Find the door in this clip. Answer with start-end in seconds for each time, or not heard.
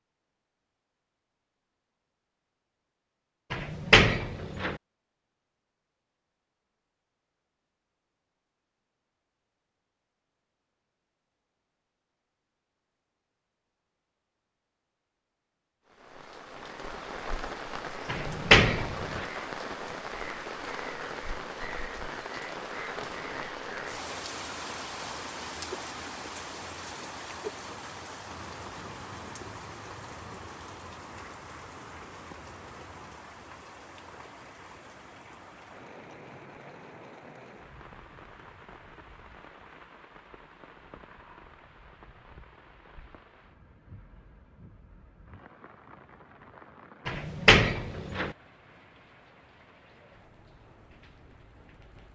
3.5-4.8, 18.1-19.2, 47.0-48.4.